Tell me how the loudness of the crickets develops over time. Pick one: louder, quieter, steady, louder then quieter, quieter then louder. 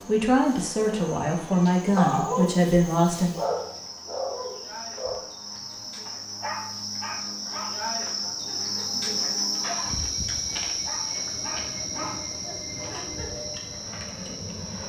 louder then quieter.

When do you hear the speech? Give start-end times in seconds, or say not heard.
0.1-3.4.